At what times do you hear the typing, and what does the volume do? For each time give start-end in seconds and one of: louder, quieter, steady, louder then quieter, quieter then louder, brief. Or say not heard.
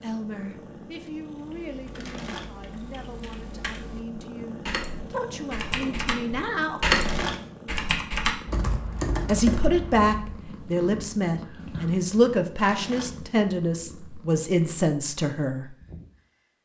1.6-10.5 louder then quieter.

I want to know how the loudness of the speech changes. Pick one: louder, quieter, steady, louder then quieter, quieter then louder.
louder.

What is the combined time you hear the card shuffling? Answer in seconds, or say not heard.
2 s.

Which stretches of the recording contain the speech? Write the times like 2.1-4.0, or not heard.
0.0-6.9, 9.2-15.8.